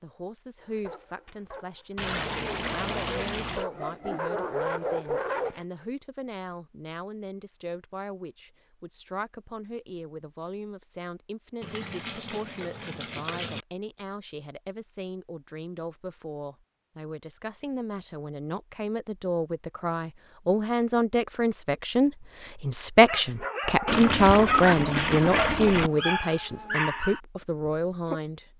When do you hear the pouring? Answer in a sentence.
The pouring can be heard from 1.9 to 3.6 s, from 11.6 to 13.7 s and from 23.9 to 25.9 s.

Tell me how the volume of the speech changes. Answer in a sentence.
The volume of the speech goes up.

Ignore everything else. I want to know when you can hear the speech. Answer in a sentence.
The speech can be heard from 0.0 to 28.5 s.